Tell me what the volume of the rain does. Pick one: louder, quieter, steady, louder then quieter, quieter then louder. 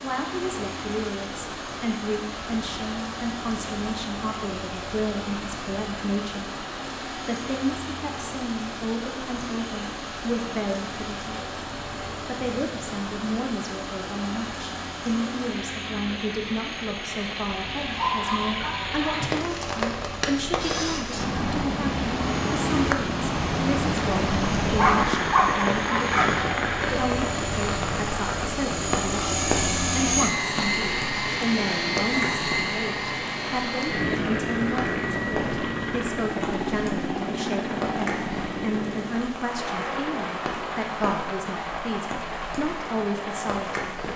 louder then quieter.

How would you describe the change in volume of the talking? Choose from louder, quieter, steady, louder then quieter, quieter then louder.
steady.